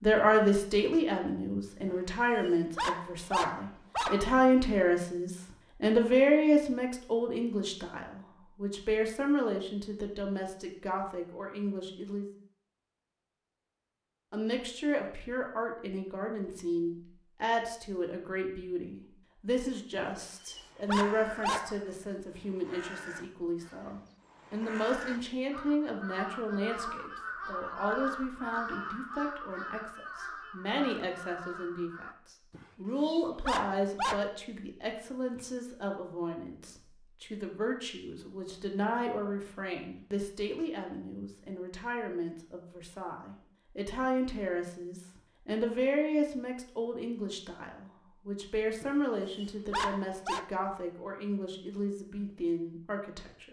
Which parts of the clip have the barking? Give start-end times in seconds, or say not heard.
1.9-4.4, 19.9-21.8, 32.5-34.2, 48.8-50.5.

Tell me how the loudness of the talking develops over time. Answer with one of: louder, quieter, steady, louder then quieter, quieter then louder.
quieter.